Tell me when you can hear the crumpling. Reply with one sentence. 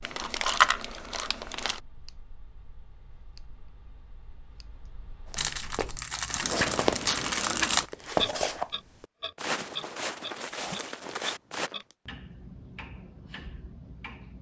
You can hear the crumpling from 0.0 to 1.8 s, from 5.3 to 7.9 s and from 10.7 to 11.9 s.